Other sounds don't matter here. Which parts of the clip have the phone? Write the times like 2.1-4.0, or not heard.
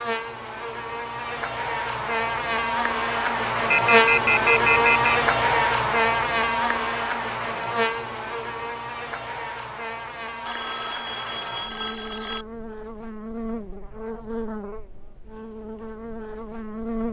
3.7-5.2, 10.4-12.4.